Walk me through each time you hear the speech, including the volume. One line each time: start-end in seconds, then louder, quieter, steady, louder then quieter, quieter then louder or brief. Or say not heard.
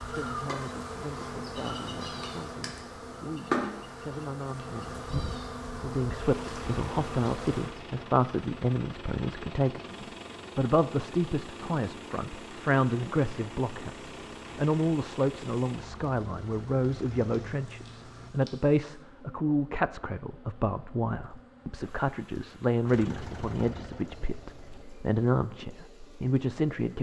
0.1-26.9 louder.